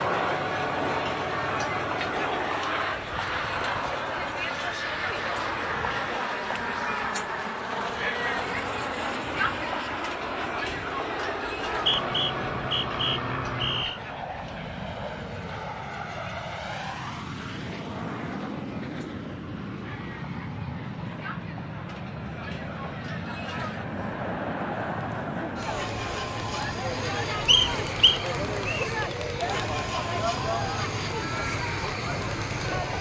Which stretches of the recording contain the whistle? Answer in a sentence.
The whistle can be heard from 11.7 to 14.0 s and from 27.4 to 28.9 s.